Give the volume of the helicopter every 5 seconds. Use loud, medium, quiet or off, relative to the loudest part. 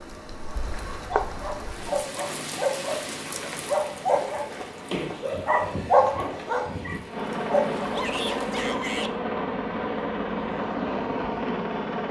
quiet, loud, loud.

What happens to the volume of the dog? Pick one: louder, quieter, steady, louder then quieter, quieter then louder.
louder then quieter.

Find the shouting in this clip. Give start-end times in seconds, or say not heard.
7.9-9.1.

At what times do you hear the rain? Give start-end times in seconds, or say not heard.
0.0-8.6.